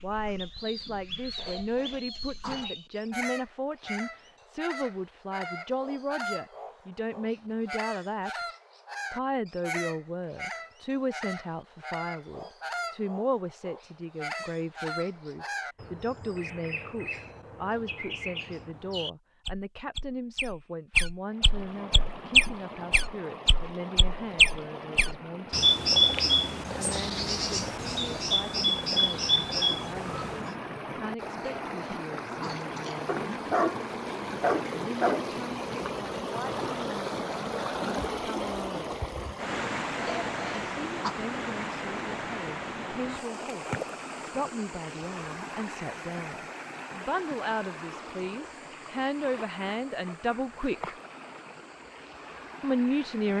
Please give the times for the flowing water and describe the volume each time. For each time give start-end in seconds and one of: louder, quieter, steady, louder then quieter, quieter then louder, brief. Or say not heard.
21.2-53.3 louder then quieter.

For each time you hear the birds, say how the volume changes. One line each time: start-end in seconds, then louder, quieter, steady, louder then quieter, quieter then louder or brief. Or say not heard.
0.0-30.5 louder.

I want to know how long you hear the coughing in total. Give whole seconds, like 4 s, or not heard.
5 s.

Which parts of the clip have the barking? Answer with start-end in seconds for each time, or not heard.
33.0-35.2.